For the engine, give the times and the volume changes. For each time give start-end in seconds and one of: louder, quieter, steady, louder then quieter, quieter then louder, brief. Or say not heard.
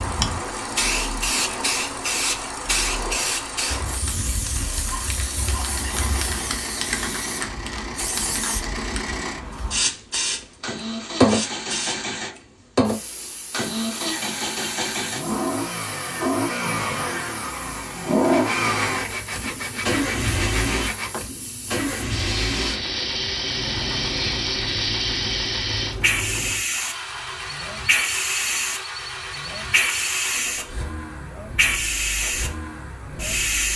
0.0-33.7 louder then quieter.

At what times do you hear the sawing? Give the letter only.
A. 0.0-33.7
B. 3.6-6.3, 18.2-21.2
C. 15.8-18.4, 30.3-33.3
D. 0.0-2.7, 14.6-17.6
B.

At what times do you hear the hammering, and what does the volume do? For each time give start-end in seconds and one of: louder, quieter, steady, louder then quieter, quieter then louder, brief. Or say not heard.
not heard.